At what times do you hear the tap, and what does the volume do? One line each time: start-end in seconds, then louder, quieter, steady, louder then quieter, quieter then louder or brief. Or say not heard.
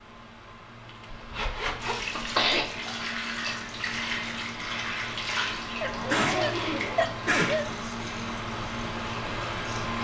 1.8-10.0 quieter.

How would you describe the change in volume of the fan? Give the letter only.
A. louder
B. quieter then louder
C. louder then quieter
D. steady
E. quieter
A.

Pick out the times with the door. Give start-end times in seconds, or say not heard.
not heard.